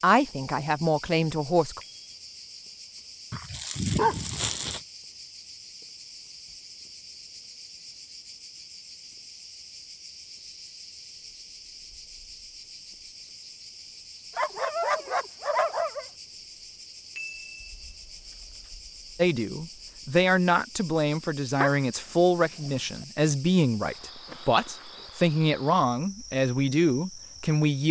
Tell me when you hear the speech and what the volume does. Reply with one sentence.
The speech can be heard briefly from 0.0 to 1.8 s; and from 19.1 to 27.8 s, at a steady volume.